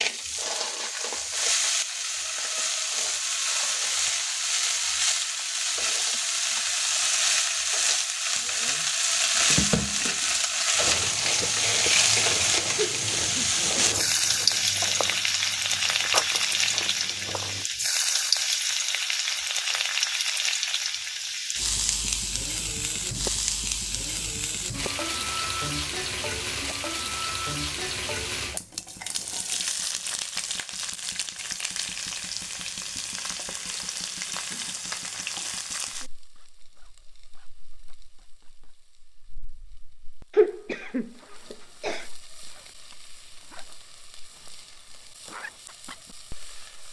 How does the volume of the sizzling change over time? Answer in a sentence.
The loudness of the sizzling goes down.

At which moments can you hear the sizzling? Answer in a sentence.
You can hear the sizzling from 0.0 to 46.8 s.